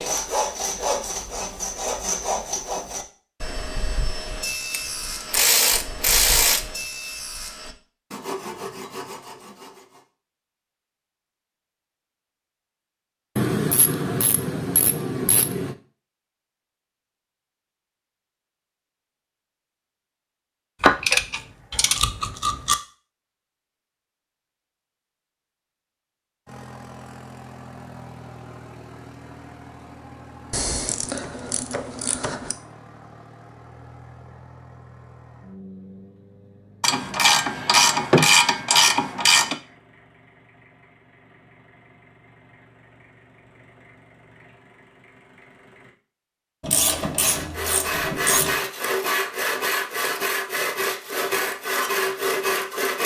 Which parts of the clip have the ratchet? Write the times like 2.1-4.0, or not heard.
4.7-6.7, 13.3-15.8, 20.8-22.8, 30.5-32.5, 36.8-39.5, 46.6-48.6.